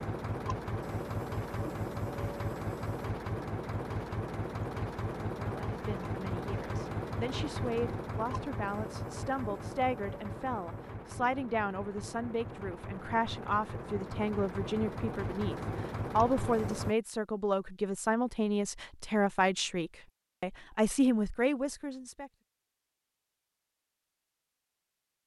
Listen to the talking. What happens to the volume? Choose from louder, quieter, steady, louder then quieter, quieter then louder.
louder.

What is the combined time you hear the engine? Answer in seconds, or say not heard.
17 s.